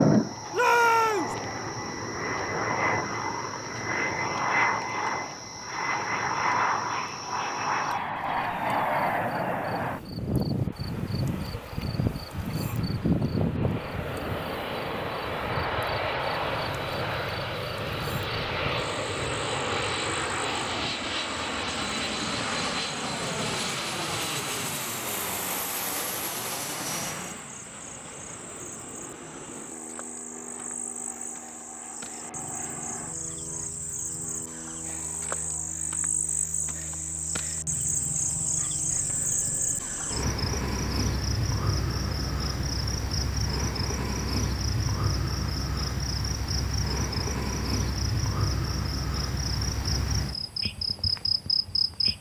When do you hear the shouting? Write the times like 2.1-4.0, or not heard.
0.5-1.4.